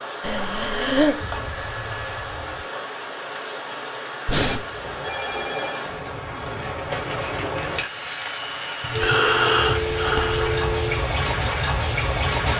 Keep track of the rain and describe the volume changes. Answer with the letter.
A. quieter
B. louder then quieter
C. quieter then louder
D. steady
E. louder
E.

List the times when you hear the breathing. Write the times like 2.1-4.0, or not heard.
0.2-1.2, 4.2-4.7, 8.8-10.7.